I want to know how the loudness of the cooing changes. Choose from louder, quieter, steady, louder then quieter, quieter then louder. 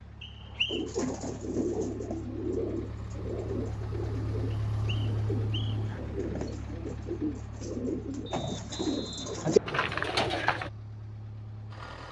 quieter then louder.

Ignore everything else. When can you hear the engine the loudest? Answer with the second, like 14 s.
5 s.